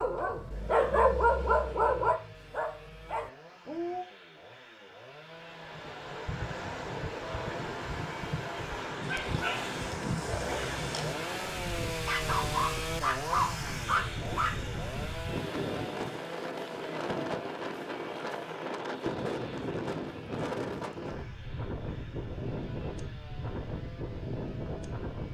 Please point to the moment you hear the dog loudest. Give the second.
1 s.